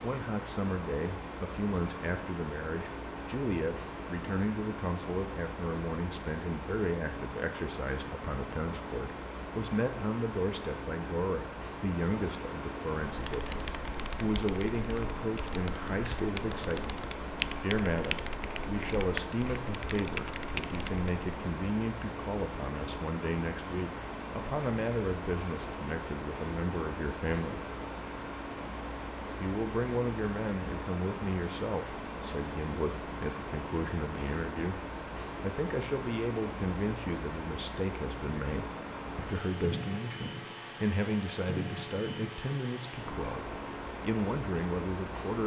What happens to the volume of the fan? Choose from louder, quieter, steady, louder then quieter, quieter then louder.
steady.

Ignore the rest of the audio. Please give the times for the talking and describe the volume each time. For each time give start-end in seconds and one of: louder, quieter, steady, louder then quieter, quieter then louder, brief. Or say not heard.
0.0-27.6 steady
29.4-45.4 steady.